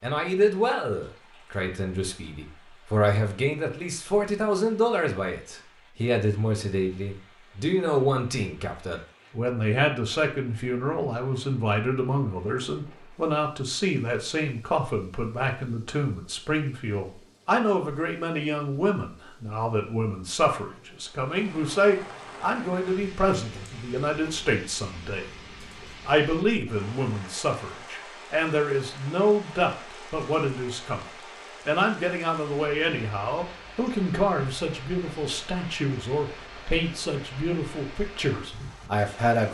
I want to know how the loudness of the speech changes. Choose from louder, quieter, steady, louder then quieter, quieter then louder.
steady.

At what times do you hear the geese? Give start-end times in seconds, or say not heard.
not heard.